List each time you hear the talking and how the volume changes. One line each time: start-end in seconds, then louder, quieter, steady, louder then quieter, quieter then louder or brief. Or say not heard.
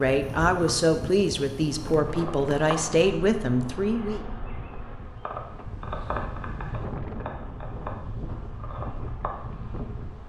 0.0-4.2 steady.